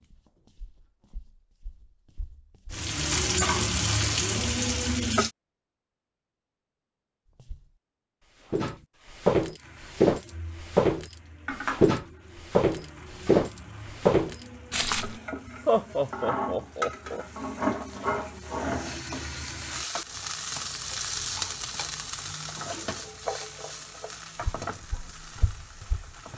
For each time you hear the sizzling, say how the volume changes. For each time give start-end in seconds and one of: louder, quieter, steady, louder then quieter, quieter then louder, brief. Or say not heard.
2.7-5.3 brief
9.6-26.3 louder then quieter.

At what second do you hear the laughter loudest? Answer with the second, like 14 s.
16 s.